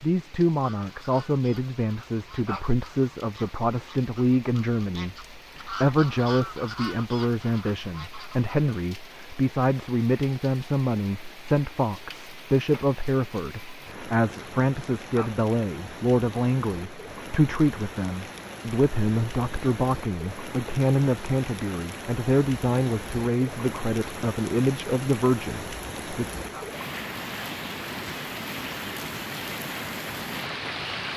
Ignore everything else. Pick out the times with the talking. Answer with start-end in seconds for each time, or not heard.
0.0-26.2.